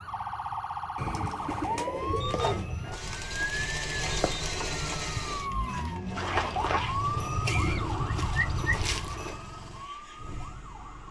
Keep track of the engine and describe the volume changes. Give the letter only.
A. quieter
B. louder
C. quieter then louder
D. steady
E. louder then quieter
A.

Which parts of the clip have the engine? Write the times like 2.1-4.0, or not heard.
2.9-11.0.